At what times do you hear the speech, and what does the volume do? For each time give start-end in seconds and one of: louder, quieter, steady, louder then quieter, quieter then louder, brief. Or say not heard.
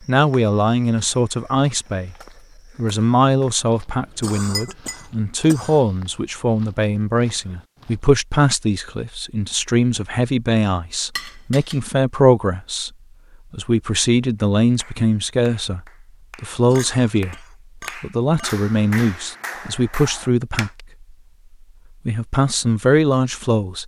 0.1-2.1 brief
2.8-12.9 steady
13.5-15.8 brief
16.4-17.4 brief
18.0-20.9 brief
22.1-23.8 brief.